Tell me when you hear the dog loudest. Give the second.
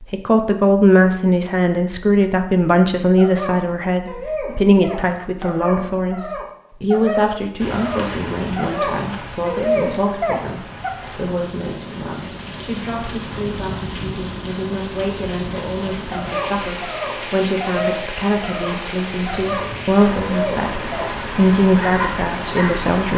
10 s.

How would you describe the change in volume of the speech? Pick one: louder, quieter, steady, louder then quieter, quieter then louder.
quieter then louder.